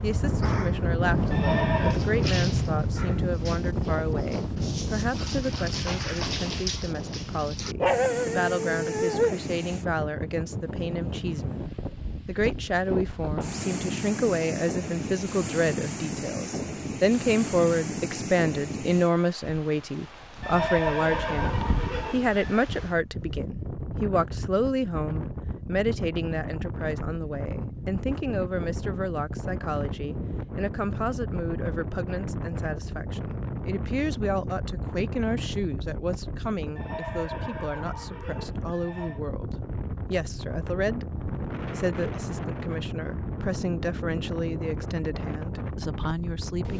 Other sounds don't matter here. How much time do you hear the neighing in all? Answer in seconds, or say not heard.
5 s.